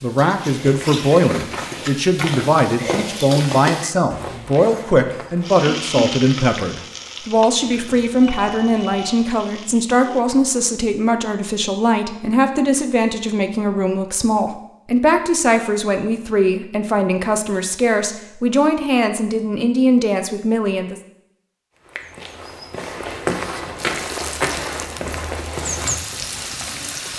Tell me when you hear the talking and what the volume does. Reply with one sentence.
The talking can be heard from 0.0 to 21.0 s, at a steady volume.